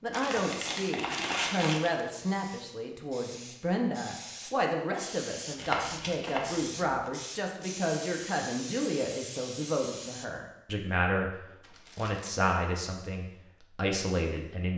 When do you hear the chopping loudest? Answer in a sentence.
The loudest moment of the chopping is at 6 seconds.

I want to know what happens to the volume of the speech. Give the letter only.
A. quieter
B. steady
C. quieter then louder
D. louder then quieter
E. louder
B.